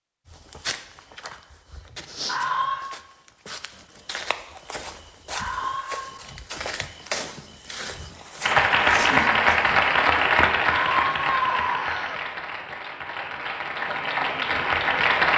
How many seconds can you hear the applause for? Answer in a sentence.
You can hear the applause for 7 seconds altogether.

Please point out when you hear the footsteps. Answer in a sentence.
You can hear the footsteps from 0.2 to 10.6 s.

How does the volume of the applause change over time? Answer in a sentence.
The volume of the applause goes down, then up.